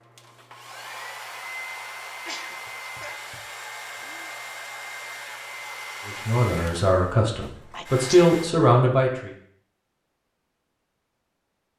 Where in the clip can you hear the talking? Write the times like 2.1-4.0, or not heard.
6.0-9.3.